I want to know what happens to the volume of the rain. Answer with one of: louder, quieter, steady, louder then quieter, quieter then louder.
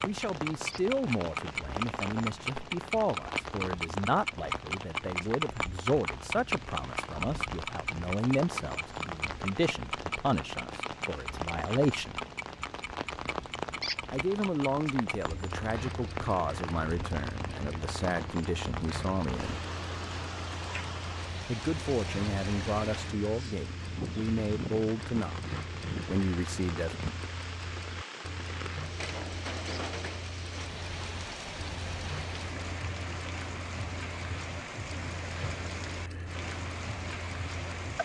steady.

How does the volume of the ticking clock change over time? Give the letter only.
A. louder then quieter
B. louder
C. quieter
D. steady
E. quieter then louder
C.